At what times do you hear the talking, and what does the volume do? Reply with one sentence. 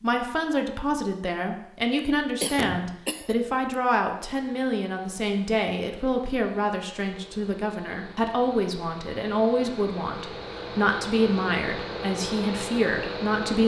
The talking can be heard from 0.0 to 13.6 s, at a steady volume.